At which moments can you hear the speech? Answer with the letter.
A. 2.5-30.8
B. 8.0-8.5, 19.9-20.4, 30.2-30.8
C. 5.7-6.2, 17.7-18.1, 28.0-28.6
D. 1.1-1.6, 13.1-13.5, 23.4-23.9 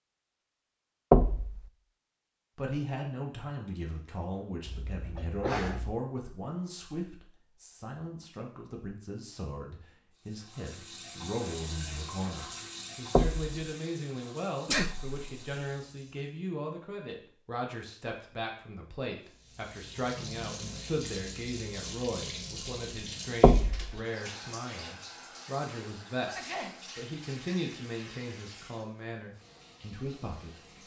A.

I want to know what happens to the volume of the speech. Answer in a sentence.
The loudness of the speech stays about the same.